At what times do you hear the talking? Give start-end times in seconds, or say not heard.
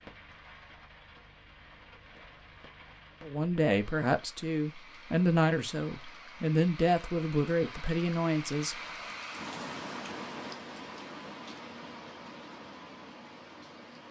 3.2-8.8.